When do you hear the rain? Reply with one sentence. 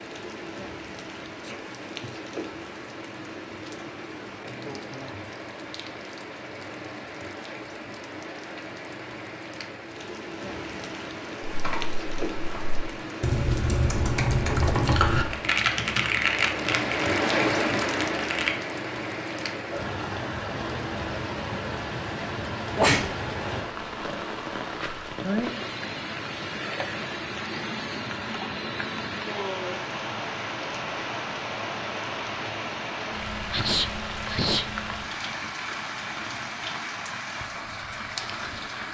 You can hear the rain from 0.0 to 38.9 s.